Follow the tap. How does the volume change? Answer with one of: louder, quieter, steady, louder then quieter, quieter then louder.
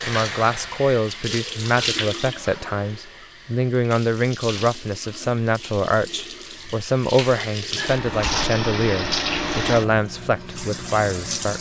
quieter then louder.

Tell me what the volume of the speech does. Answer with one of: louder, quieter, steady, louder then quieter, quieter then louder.
steady.